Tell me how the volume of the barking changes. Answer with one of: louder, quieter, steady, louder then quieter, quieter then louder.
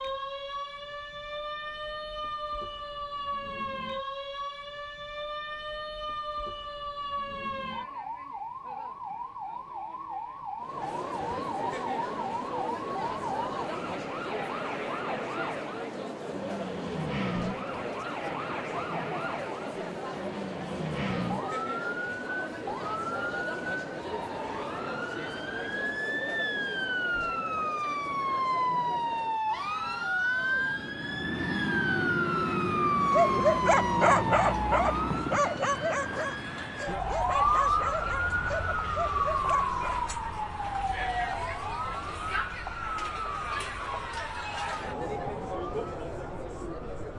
quieter.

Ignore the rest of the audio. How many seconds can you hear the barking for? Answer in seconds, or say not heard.
7 s.